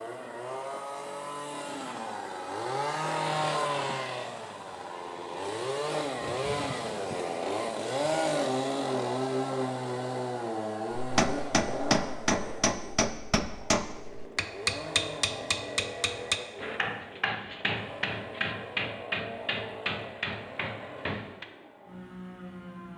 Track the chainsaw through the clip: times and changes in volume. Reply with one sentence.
The chainsaw can be heard from 0.0 to 22.9 s, getting quieter.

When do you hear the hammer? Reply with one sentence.
You can hear the hammer from 10.9 to 21.4 s.